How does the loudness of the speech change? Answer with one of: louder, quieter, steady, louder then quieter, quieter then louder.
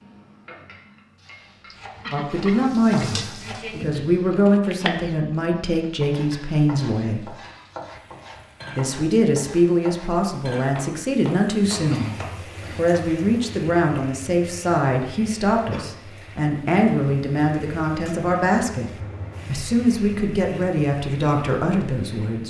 steady.